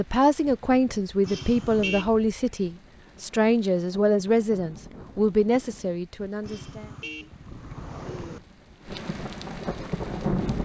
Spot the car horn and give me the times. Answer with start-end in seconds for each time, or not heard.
1.2-2.1, 6.4-8.4.